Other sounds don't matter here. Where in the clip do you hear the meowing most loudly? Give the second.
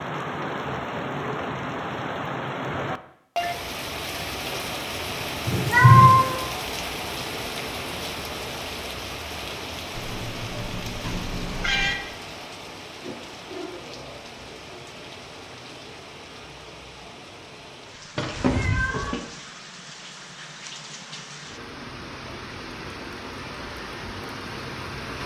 6 s.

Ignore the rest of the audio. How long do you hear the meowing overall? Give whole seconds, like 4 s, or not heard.
4 s.